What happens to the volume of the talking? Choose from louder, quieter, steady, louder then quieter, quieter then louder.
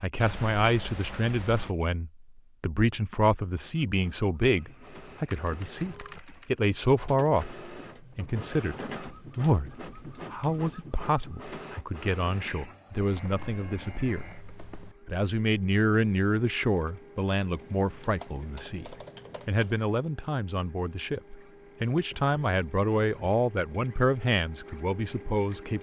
steady.